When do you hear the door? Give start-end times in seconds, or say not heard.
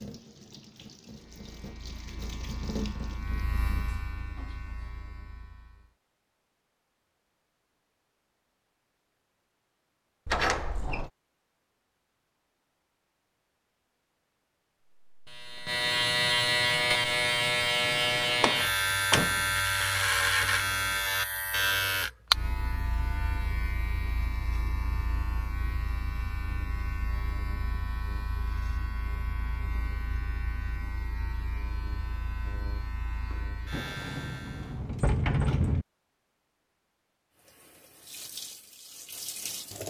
10.2-11.1, 18.4-19.4, 33.7-35.9.